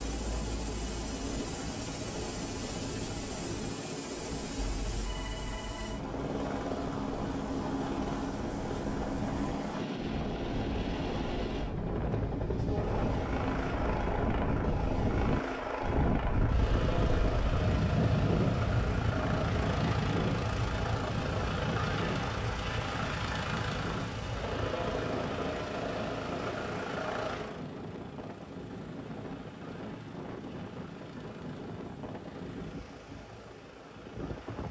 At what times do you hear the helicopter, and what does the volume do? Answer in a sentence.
The helicopter can be heard from 0.0 to 34.6 s, getting quieter.